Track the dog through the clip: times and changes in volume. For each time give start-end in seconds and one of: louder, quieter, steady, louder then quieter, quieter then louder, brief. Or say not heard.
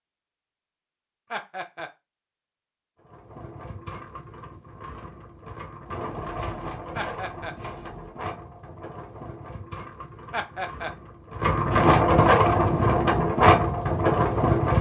not heard.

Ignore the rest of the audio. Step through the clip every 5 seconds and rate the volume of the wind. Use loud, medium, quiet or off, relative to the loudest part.
quiet, quiet, loud.